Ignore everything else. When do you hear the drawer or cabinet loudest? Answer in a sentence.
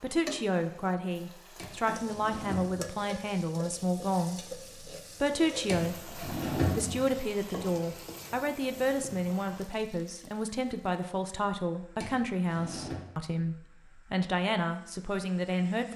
The loudest moment of the drawer or cabinet is at 7 seconds.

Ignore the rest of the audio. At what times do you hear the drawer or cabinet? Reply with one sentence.
You can hear the drawer or cabinet from 1.6 to 3.0 s, from 5.7 to 7.1 s and from 12.0 to 13.1 s.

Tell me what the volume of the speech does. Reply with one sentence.
The volume of the speech stays about the same.